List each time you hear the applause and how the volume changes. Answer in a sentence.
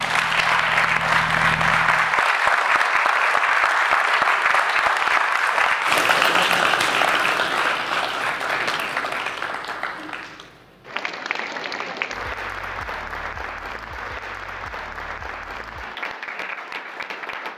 The applause can be heard from 0.0 to 17.5 s, getting quieter.